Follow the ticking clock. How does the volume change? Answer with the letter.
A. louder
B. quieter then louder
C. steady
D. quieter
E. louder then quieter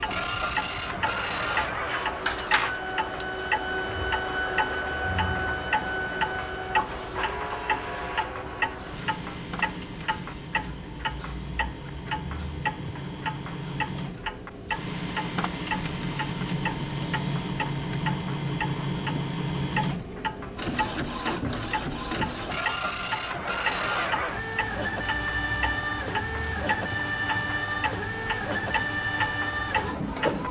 C.